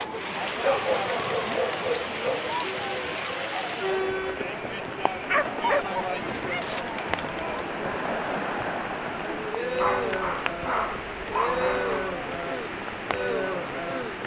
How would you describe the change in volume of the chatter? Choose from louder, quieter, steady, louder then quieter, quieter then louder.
steady.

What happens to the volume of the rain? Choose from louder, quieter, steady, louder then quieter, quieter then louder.
steady.